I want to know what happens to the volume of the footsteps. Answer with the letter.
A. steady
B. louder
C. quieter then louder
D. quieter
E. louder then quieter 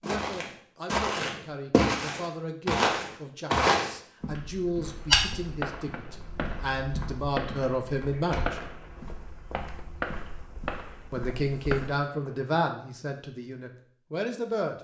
D.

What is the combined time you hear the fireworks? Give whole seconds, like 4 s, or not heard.
8 s.